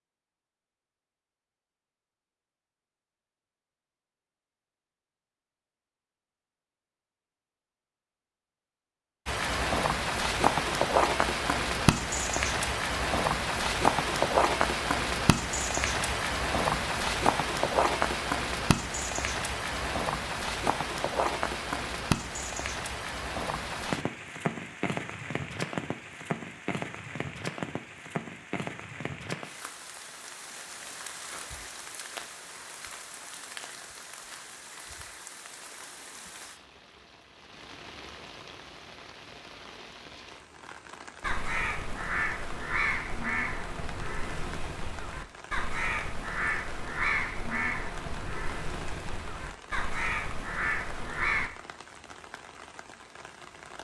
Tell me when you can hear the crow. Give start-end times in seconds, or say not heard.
41.2-51.5.